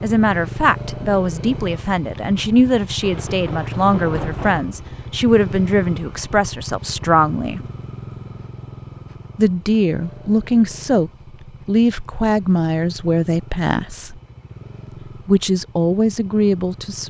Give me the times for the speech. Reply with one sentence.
You can hear the speech from 0.0 to 7.6 s, from 9.3 to 14.2 s and from 15.2 to 17.0 s.